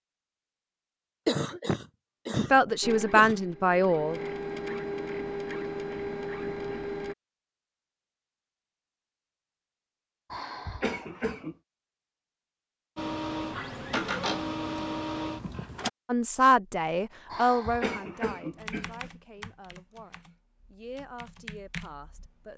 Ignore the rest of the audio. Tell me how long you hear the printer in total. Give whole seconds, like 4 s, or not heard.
7 s.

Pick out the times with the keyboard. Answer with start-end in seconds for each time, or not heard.
18.6-22.5.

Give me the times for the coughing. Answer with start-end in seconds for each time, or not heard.
1.2-3.4, 10.3-11.6, 17.2-19.1.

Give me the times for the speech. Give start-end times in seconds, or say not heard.
2.4-4.2, 16.1-22.5.